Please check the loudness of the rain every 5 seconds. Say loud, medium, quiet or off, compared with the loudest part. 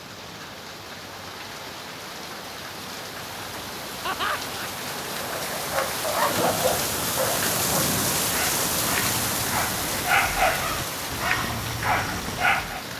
medium, loud, medium.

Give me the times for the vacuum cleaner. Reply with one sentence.
The vacuum cleaner can't be heard in this clip.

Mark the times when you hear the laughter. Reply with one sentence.
The laughter can be heard from 4.0 to 4.7 s.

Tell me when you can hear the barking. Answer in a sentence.
The barking can be heard from 5.3 to 12.8 s.